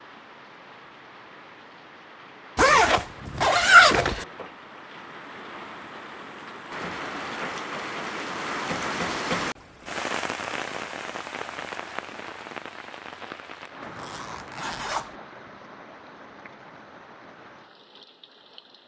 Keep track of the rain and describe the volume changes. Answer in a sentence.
The loudness of the rain goes up, then down.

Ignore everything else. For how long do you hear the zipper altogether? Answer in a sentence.
You can hear the zipper for 3 seconds altogether.